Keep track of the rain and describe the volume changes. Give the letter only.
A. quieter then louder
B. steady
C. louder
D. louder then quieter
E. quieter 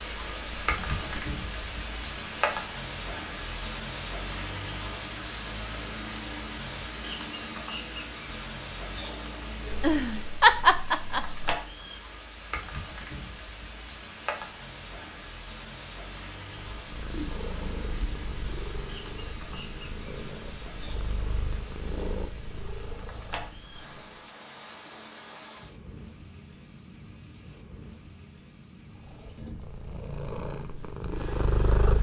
E.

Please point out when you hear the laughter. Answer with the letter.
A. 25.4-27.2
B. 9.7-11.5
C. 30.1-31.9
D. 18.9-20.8
B.